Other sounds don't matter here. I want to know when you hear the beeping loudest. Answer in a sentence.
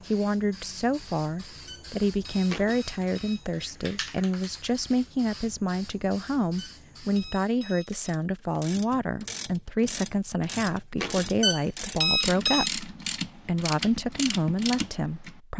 The volume of the beeping peaks at 12 seconds.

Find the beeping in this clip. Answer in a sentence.
You can hear the beeping from 1.6 to 3.5 s, from 6.5 to 8.2 s and from 11.4 to 12.7 s.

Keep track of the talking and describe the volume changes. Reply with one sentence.
The volume of the talking stays about the same.